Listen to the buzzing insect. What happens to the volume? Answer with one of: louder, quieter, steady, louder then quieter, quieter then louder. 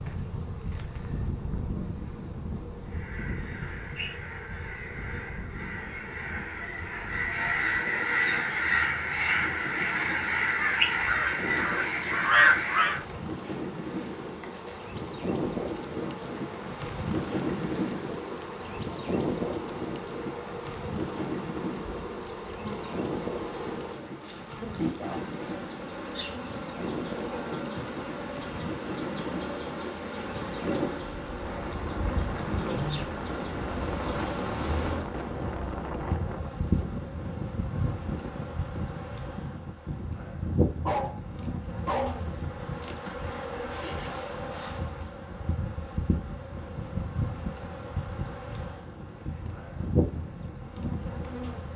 louder.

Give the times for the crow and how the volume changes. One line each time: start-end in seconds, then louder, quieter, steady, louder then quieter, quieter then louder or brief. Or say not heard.
2.9-13.0 louder.